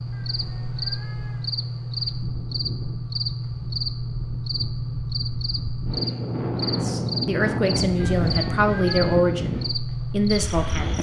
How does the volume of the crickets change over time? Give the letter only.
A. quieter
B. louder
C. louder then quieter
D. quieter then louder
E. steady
E.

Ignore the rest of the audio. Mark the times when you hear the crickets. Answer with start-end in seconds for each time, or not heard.
0.0-10.9.